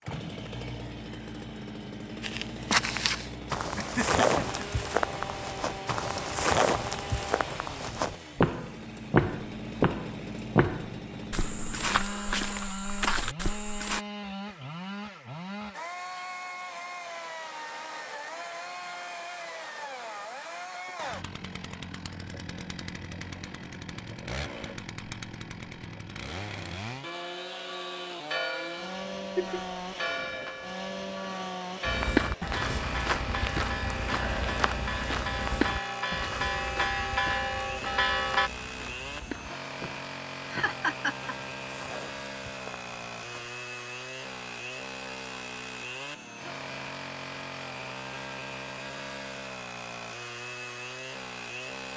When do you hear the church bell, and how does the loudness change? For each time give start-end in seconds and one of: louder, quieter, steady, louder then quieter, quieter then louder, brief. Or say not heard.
27.0-38.5 louder.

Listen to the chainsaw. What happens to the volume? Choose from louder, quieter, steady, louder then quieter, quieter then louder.
steady.